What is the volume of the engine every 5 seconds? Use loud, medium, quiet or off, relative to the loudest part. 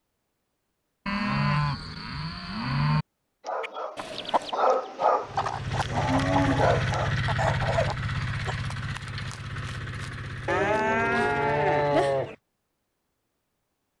off, loud, medium.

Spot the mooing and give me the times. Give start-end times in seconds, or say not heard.
1.1-3.0, 5.7-7.0, 10.4-12.3.